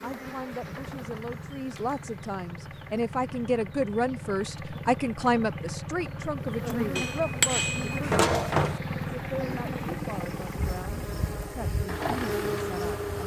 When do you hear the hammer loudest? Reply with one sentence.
The loudest moment of the hammer is at 8 seconds.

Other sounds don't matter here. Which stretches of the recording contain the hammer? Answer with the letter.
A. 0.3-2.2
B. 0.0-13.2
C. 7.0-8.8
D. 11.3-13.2
C.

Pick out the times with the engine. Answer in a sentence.
The engine can be heard from 0.0 to 13.2 s.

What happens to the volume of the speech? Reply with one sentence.
The loudness of the speech goes up, then down.